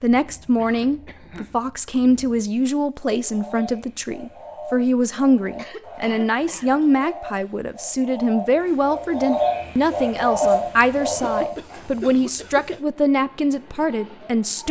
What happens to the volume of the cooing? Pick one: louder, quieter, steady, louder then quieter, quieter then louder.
louder.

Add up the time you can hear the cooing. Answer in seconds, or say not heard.
9 s.